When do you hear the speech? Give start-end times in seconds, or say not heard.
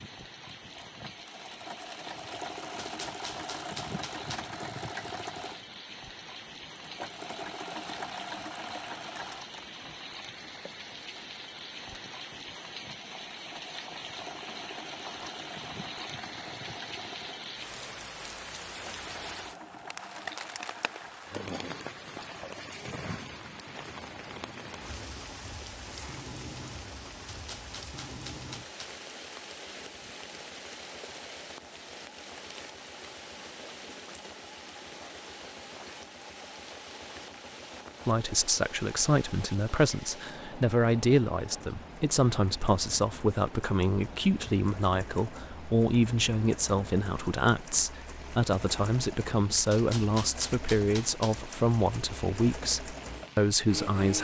38.0-54.1.